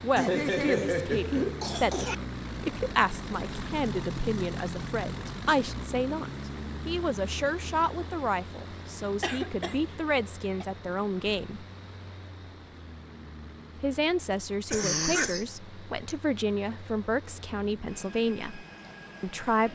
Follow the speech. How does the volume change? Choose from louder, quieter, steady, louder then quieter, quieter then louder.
steady.